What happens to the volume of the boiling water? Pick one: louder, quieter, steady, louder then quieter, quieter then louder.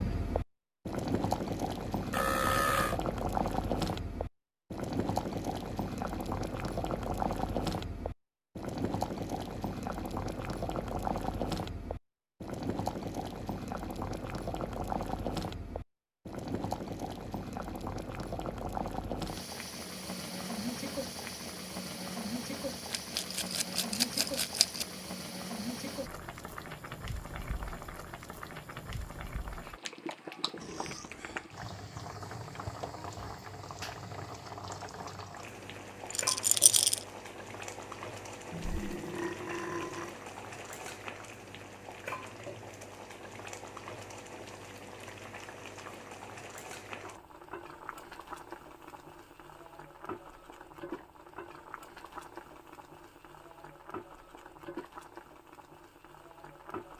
quieter.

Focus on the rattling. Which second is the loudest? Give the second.
37 s.